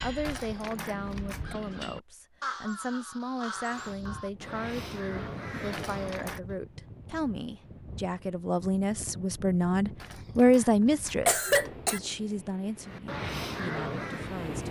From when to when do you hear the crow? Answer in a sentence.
The crow can be heard from 0.0 to 6.5 s and from 12.8 to 14.5 s.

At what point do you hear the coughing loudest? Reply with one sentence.
The loudest moment of the coughing is at 11 seconds.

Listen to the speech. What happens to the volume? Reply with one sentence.
The volume of the speech goes up, then down.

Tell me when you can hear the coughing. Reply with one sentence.
You can hear the coughing from 0.2 to 1.6 s, from 5.7 to 6.4 s and from 10.0 to 12.0 s.